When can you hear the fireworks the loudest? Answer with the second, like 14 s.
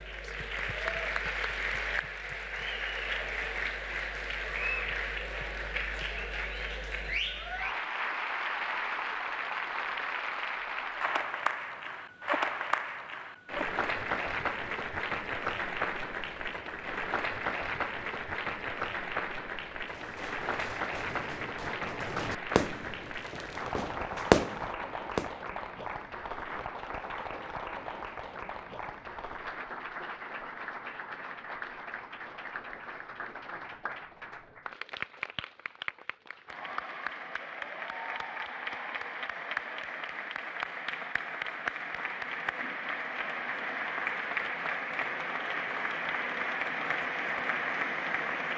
24 s.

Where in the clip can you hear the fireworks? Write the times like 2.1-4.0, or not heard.
19.8-25.4.